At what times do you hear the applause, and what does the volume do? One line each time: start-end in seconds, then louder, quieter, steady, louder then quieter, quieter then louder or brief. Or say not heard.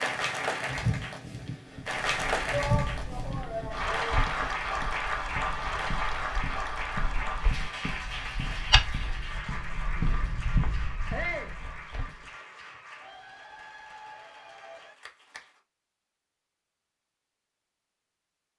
0.0-15.6 quieter.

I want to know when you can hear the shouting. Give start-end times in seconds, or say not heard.
2.5-4.2, 11.1-11.6.